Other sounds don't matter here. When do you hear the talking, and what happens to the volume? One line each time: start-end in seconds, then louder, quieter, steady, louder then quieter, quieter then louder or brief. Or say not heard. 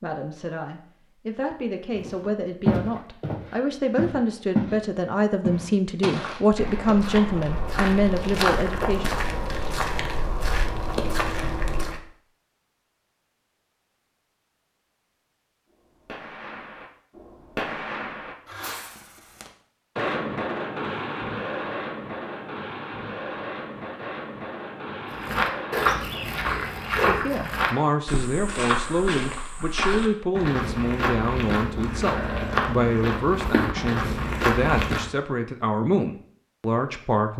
0.0-9.1 louder
26.9-37.3 steady.